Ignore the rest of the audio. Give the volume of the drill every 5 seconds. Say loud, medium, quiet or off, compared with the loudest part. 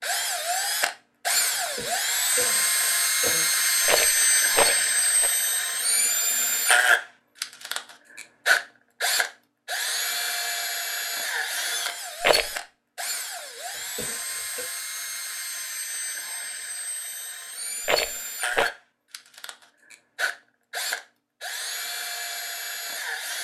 loud, loud, medium, medium, medium.